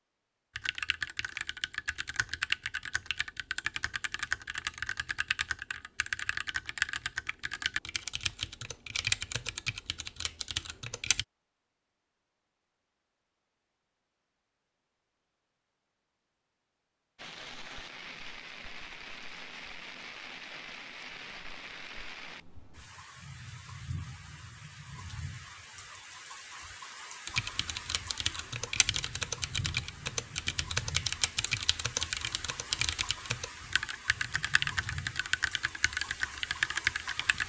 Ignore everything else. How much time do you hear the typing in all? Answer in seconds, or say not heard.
21 s.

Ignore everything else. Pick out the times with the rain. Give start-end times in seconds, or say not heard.
17.1-37.4.